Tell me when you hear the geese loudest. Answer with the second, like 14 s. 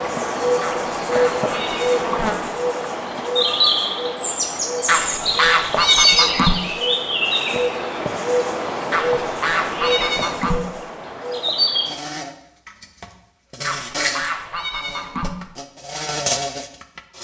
6 s.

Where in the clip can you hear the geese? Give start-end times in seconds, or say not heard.
0.6-2.3, 4.8-6.5, 8.9-10.6, 13.6-15.3.